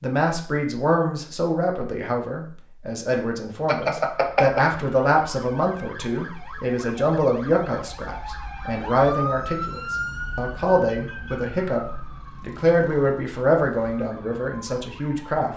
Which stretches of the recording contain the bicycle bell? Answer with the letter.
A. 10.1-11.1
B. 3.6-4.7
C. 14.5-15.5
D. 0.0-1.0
B.